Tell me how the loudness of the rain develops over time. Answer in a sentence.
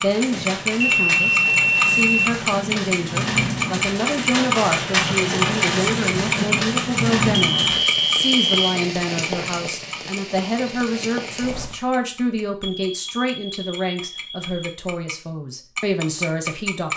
The volume of the rain goes up, then down.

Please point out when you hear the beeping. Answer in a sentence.
You can hear the beeping from 0.3 to 2.3 s, from 7.3 to 8.8 s and from 12.6 to 14.8 s.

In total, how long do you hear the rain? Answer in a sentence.
The rain can be heard for 12 seconds in total.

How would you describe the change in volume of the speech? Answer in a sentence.
The volume of the speech stays about the same.